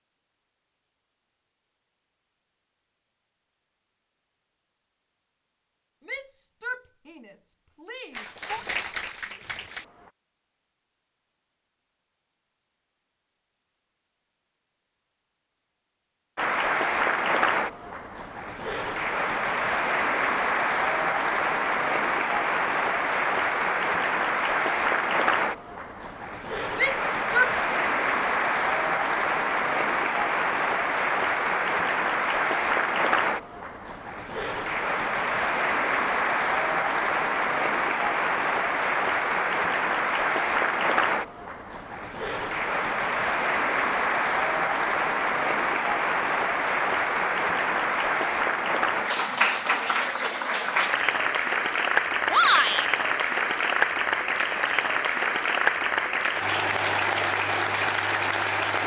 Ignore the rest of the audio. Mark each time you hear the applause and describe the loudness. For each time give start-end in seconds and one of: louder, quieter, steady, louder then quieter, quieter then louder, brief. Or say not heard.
8.1-10.1 brief
16.4-58.8 steady.